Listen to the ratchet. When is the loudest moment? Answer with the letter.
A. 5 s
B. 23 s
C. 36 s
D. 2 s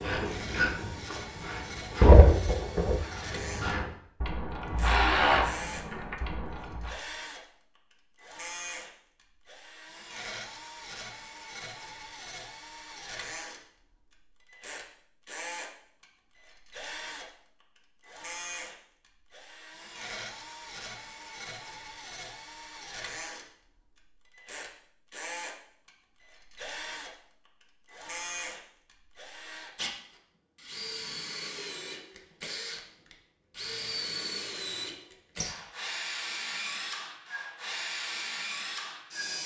D.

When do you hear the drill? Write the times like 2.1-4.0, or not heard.
0.0-39.4.